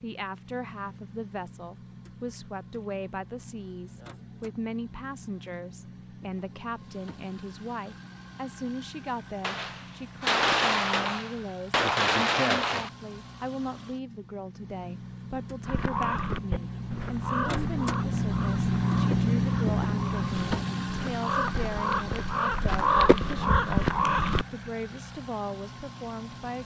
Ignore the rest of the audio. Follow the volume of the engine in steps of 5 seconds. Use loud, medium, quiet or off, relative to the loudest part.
quiet, quiet, quiet, loud, medium, quiet.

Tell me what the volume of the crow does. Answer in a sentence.
The loudness of the crow goes down, then up.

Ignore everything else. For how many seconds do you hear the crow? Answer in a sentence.
The crow can be heard for 9 seconds in total.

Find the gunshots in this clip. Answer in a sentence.
You can hear the gunshots from 9.4 to 12.9 s.